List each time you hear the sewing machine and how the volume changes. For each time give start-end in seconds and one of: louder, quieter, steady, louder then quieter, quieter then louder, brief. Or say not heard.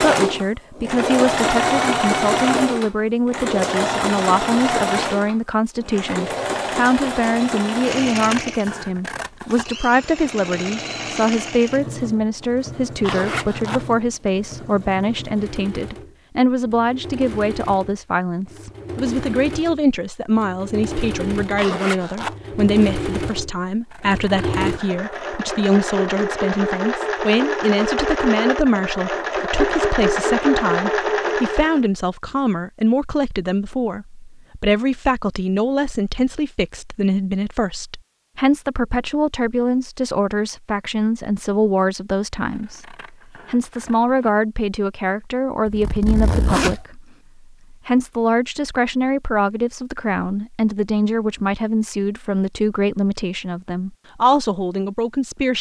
0.0-31.9 quieter then louder.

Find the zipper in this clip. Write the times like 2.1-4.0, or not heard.
13.0-13.8, 21.6-22.4, 45.6-46.8.